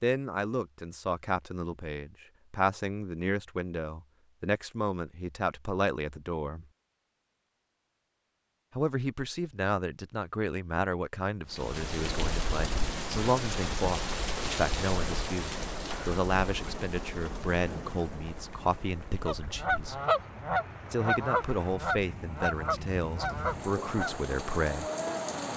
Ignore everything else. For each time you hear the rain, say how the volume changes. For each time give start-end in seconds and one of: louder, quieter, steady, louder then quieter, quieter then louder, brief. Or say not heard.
11.5-25.5 quieter then louder.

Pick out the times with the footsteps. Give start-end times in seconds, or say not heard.
not heard.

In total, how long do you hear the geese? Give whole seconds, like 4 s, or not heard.
5 s.